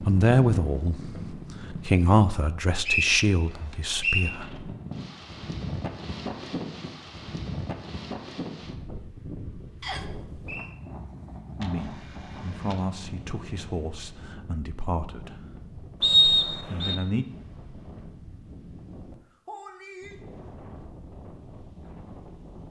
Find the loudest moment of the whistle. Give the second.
16 s.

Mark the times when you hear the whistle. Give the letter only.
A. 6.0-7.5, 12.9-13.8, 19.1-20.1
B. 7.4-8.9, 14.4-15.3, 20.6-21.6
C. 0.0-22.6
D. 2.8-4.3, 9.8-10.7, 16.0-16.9
D.